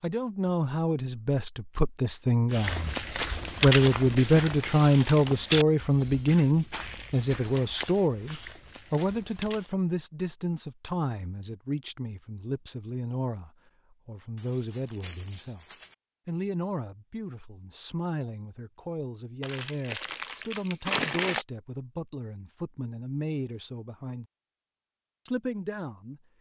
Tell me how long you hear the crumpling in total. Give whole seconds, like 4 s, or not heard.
6 s.